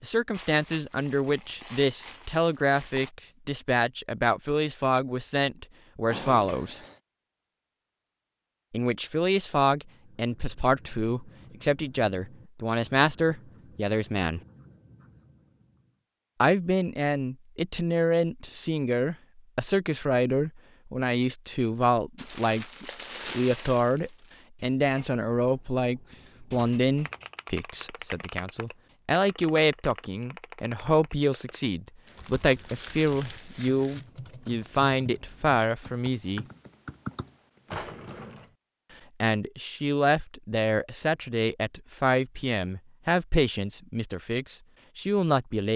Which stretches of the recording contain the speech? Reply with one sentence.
The speech can be heard from 0.0 to 6.8 s, from 8.7 to 14.4 s, from 16.4 to 36.5 s and from 39.2 to 45.7 s.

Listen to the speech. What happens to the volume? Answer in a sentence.
The loudness of the speech stays about the same.